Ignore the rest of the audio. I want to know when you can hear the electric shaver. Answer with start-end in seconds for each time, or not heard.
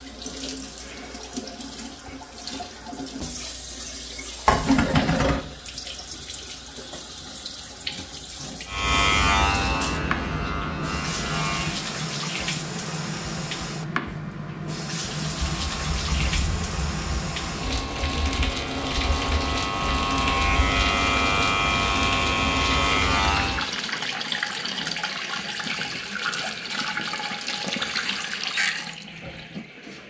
8.7-11.8, 15.3-23.7.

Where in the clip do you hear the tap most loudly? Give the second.
5 s.